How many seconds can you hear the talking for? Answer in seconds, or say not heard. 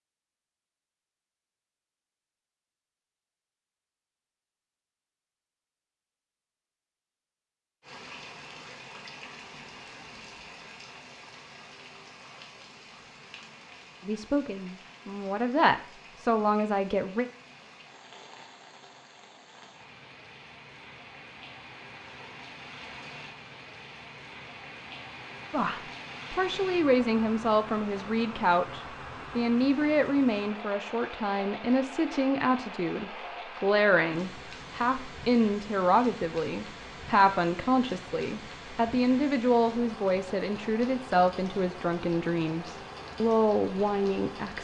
22 s.